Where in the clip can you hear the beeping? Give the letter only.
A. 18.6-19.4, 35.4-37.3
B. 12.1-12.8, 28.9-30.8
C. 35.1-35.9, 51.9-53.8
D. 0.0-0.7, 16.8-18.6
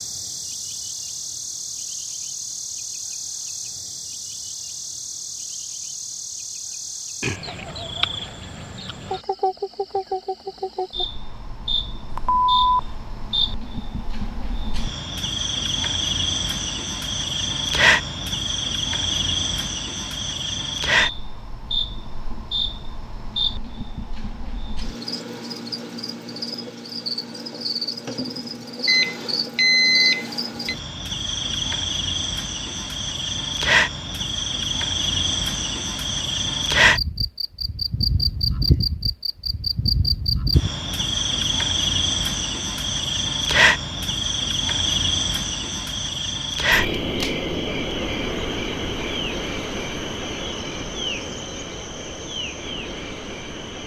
B.